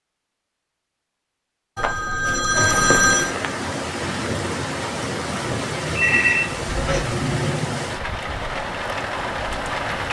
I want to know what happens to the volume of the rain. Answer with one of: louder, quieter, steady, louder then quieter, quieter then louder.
steady.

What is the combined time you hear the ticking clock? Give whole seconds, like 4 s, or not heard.
not heard.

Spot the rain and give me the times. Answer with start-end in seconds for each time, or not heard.
2.5-10.0.